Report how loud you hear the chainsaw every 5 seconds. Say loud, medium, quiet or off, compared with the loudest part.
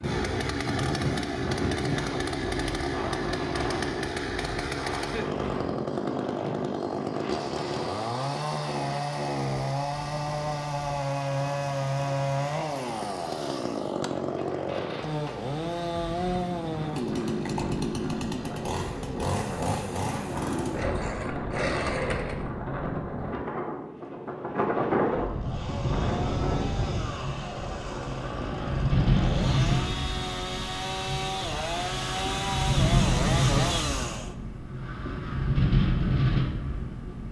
loud, loud, loud, loud, loud, medium, loud, off.